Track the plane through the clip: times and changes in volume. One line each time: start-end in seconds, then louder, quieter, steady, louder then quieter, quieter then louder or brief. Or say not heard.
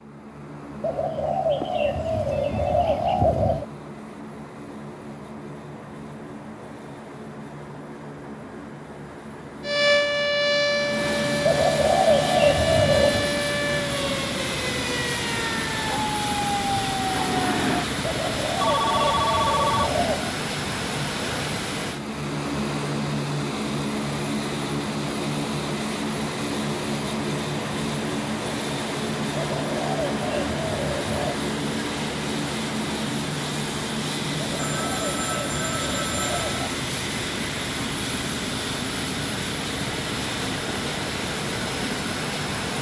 0.0-42.7 louder.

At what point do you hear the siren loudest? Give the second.
10 s.